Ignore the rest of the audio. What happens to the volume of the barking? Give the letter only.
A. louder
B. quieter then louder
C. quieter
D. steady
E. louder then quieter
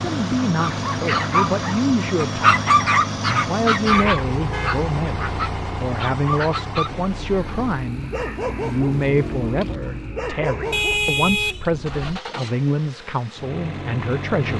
C.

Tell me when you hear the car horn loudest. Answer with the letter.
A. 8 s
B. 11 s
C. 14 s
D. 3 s
B.